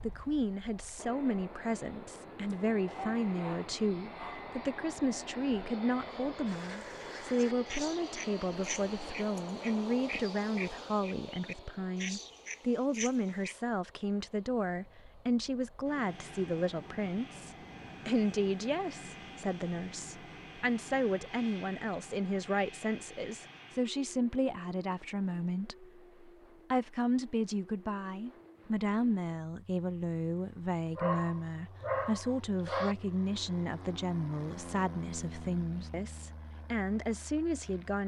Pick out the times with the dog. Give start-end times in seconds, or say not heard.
2.5-4.5, 30.9-33.0.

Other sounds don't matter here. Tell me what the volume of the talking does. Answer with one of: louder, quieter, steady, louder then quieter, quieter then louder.
steady.